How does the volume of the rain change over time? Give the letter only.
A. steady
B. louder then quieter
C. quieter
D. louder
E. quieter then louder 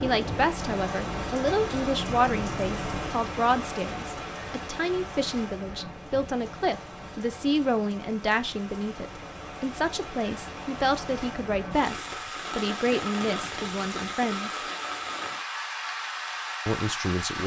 E.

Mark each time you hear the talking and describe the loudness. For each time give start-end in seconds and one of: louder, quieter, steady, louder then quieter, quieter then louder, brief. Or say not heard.
0.0-14.6 steady
16.6-17.4 brief.